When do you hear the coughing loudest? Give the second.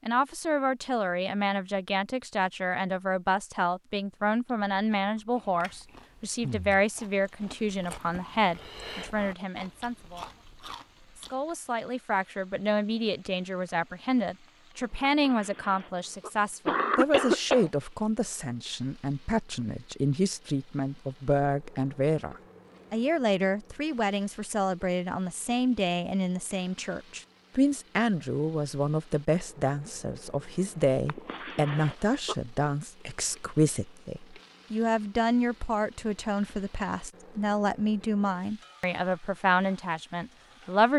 17 s.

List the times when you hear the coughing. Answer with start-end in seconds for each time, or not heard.
15.1-17.7, 31.1-32.4.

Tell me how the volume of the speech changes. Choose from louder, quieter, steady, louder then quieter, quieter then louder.
steady.